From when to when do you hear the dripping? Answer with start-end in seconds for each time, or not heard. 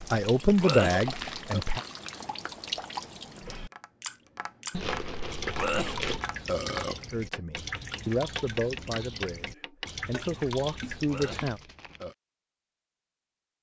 0.0-11.6.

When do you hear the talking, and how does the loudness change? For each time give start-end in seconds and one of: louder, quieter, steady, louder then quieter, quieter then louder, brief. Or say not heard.
0.1-1.8 brief
7.1-11.6 quieter then louder.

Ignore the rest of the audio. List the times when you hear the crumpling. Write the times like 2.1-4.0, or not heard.
0.5-2.4, 4.7-6.2, 11.2-12.2.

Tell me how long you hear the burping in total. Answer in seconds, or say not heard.
4 s.